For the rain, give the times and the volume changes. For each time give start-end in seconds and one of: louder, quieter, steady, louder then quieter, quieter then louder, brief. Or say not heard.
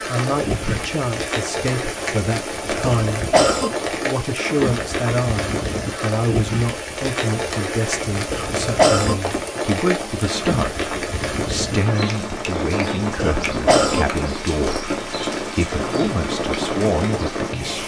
0.0-17.8 steady.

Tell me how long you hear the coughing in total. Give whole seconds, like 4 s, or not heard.
3 s.